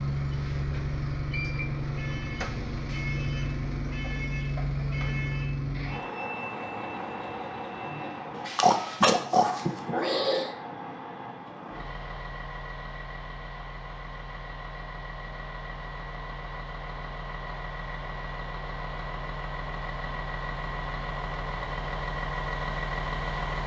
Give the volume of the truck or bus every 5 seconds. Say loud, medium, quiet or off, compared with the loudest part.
loud, loud, medium, medium, loud.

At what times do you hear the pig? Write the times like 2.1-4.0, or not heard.
8.6-10.5.